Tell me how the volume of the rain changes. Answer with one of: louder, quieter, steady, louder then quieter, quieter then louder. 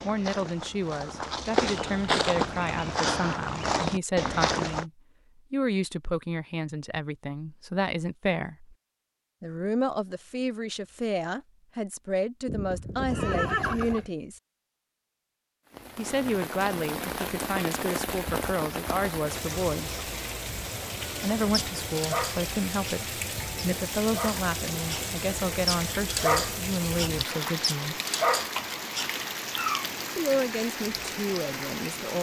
steady.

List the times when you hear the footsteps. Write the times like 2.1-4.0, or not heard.
0.0-4.8.